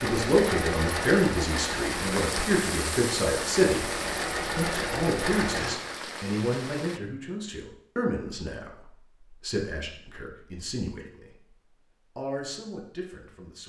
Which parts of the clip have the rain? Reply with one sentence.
The rain can be heard from 0.0 to 7.0 s.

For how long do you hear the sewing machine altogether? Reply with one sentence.
You can hear the sewing machine for 6 seconds altogether.